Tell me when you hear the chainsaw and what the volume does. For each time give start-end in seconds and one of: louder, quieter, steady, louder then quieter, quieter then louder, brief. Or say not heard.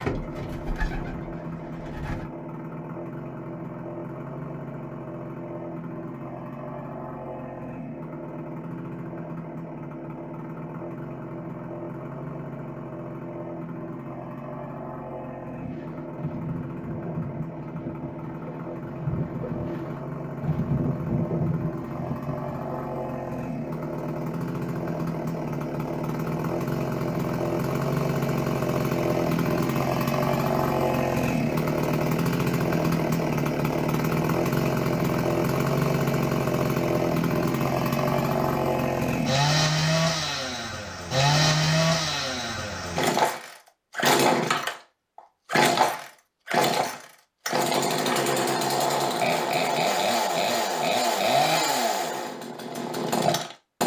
0.0-53.8 louder.